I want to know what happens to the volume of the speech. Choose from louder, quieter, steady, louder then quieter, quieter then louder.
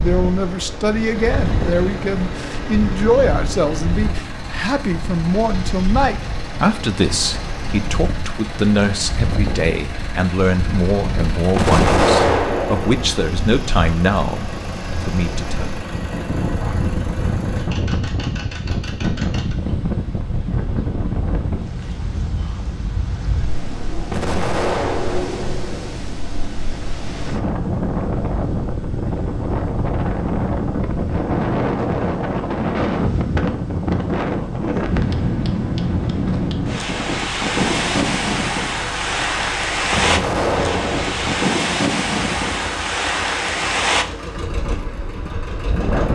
steady.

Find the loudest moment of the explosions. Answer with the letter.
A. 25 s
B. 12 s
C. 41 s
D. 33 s
B.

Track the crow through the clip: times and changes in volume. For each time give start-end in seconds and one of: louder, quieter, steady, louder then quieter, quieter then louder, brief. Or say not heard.
not heard.